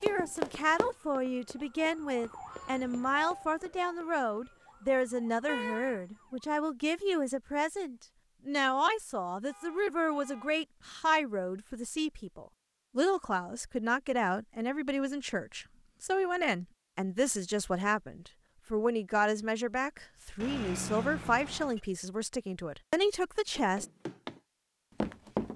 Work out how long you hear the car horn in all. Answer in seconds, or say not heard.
3 s.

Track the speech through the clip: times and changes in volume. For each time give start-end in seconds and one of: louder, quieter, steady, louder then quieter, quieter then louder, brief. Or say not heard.
0.0-23.9 steady.